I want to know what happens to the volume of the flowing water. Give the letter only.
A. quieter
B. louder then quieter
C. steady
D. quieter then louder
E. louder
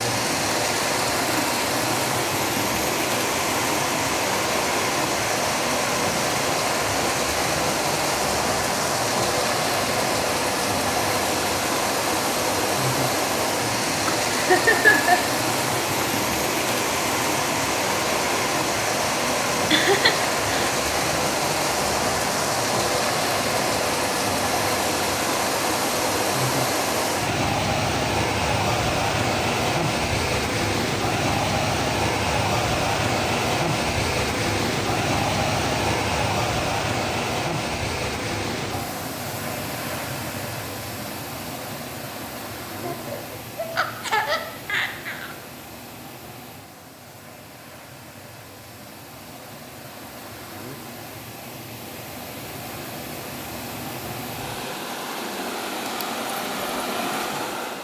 A.